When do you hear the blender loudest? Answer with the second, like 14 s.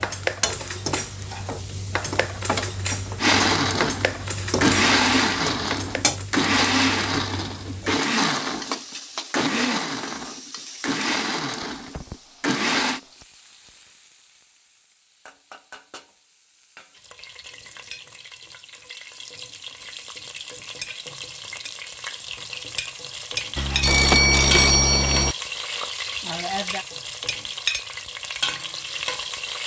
5 s.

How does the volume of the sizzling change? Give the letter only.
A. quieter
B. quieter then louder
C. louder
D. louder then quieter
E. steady
B.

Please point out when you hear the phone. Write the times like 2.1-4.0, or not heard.
23.6-25.4.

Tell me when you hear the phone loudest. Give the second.
24 s.